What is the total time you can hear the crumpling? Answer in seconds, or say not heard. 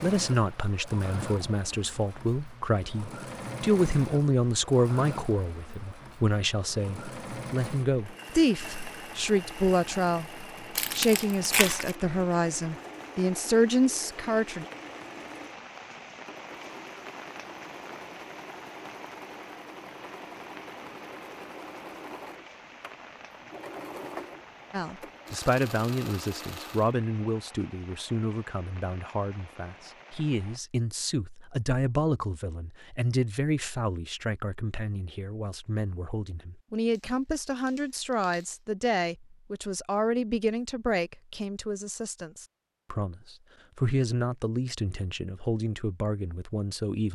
3 s.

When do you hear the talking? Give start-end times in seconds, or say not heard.
0.0-14.7, 24.7-47.1.